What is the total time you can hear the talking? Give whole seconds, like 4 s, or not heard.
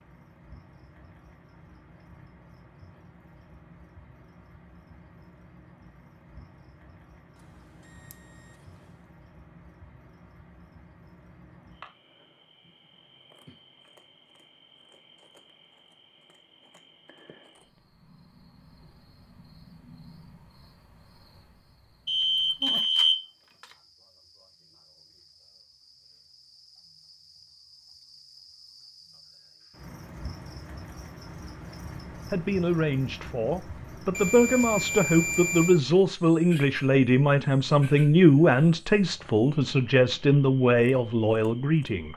10 s.